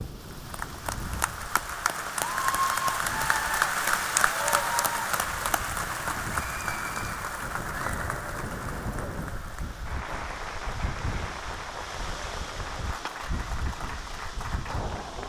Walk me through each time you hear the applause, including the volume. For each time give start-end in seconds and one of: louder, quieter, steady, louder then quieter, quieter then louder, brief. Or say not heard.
0.0-15.2 quieter.